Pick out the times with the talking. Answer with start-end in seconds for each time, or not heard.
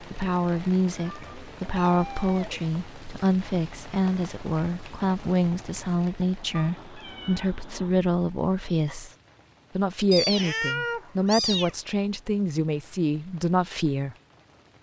0.0-9.2, 9.8-14.2.